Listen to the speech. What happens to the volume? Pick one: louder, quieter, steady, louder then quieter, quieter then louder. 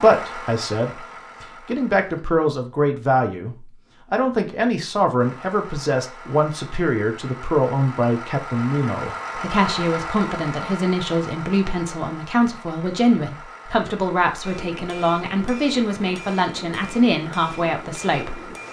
steady.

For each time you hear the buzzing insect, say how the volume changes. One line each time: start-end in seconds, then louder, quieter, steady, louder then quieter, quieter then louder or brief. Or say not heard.
not heard.